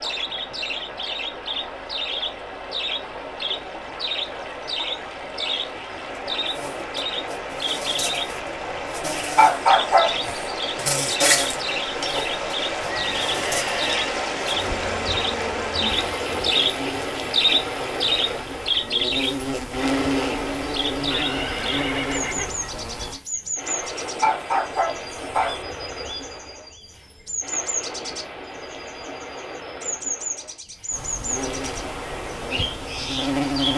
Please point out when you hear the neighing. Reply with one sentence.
The neighing can be heard from 12.8 to 14.1 s and from 21.1 to 22.6 s.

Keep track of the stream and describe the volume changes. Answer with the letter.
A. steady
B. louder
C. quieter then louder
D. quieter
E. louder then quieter
E.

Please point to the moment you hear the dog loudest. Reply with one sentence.
The volume of the dog peaks at 10 seconds.